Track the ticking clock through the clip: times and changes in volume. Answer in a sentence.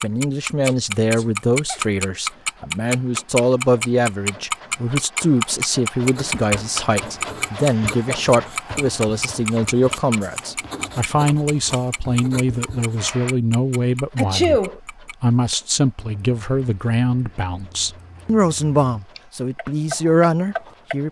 The ticking clock can be heard from 0.0 to 20.9 s, getting quieter.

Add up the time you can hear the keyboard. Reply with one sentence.
The keyboard can't be heard in this clip.